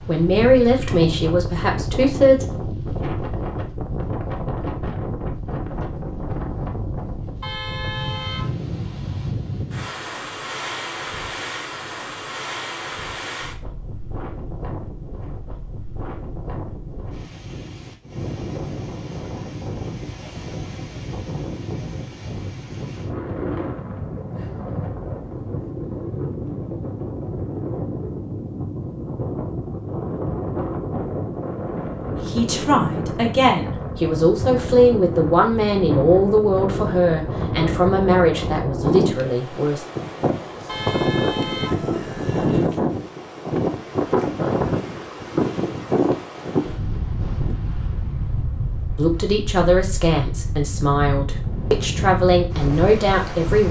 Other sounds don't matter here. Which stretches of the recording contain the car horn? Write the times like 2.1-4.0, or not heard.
7.4-8.6, 40.6-42.6.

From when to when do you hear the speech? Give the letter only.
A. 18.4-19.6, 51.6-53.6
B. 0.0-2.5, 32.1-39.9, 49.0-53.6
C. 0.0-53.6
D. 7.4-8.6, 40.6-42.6
B.